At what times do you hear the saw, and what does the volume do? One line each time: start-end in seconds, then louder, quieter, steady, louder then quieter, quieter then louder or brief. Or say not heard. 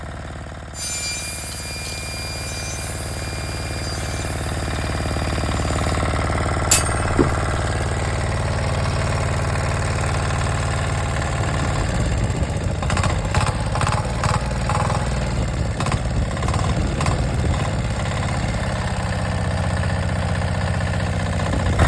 0.7-6.0 quieter.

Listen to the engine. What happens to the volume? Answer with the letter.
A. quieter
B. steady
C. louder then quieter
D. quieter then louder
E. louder
E.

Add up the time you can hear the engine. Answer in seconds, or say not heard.
22 s.